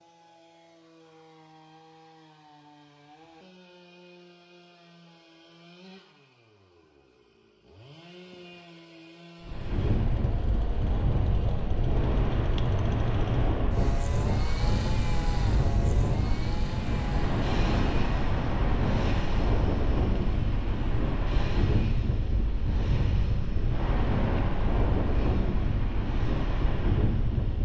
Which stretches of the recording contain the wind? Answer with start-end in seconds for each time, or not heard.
9.4-27.6.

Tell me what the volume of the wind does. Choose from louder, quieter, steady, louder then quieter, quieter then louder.
steady.